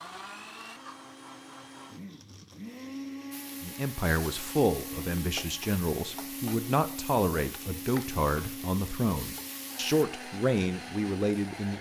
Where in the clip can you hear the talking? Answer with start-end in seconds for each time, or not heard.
3.6-11.7.